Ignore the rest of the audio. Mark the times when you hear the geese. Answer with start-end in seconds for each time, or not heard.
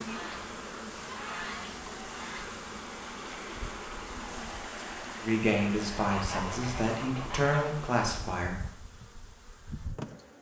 0.1-2.6, 6.1-7.8.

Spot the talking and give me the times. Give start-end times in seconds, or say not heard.
5.2-8.6.